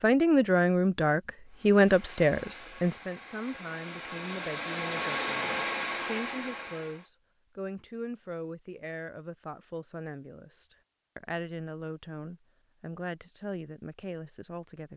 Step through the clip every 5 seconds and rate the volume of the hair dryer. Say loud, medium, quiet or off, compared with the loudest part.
medium, loud, off.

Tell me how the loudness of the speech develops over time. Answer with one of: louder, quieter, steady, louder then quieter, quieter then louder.
quieter.